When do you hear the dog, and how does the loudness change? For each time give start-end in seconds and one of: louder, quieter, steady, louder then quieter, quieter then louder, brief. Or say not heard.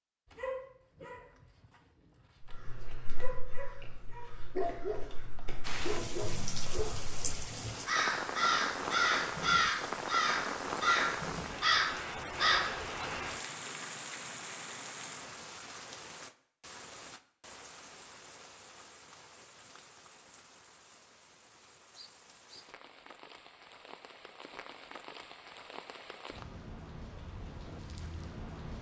0.2-7.0 quieter then louder.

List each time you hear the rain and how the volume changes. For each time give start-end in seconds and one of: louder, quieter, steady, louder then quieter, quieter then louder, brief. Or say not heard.
5.6-28.7 quieter then louder.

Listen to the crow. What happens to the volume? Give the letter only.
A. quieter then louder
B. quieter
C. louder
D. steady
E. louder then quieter
C.